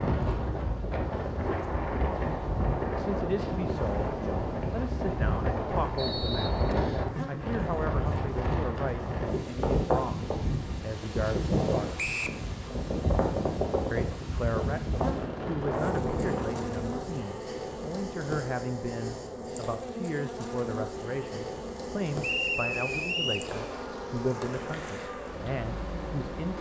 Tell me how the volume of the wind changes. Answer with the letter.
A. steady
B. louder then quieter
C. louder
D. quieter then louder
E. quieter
A.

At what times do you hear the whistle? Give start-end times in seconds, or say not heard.
6.0-7.1, 11.9-12.4, 22.2-23.5.